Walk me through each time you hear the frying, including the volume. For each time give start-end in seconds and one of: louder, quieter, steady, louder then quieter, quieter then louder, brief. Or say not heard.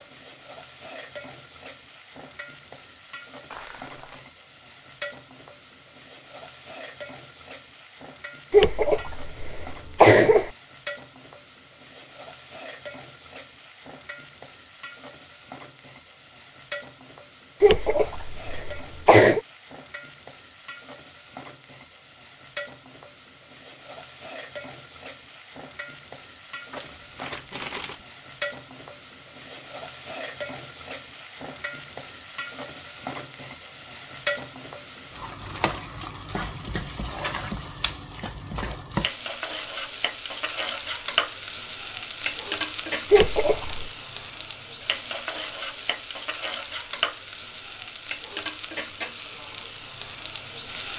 0.0-50.9 louder.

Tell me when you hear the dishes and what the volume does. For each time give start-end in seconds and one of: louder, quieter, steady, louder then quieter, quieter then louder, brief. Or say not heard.
not heard.